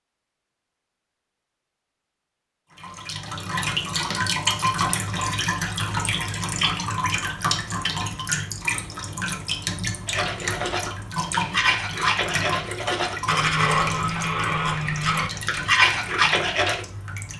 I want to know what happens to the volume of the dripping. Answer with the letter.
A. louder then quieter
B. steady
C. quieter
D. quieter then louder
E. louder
C.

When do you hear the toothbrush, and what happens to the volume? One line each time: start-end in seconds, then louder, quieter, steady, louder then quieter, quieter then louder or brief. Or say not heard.
10.1-16.9 louder.